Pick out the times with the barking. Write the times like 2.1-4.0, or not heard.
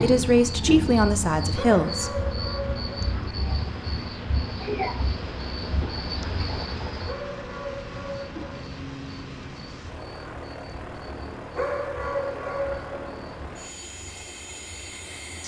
1.5-3.1, 7.0-8.5, 11.6-13.2.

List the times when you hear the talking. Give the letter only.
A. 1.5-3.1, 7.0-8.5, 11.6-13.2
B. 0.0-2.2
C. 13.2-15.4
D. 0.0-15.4
B.